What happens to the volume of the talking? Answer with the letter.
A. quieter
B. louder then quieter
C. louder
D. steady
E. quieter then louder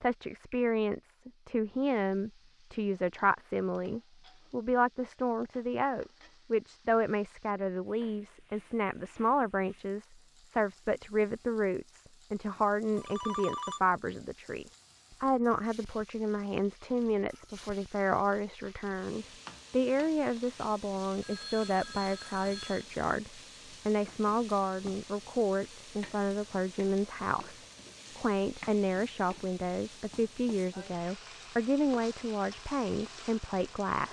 D.